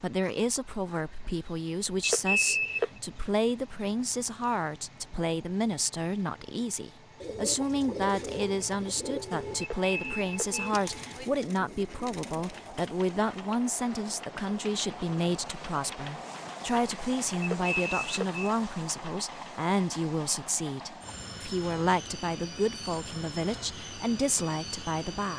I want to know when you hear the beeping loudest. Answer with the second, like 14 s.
2 s.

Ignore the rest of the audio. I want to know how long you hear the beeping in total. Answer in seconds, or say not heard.
3 s.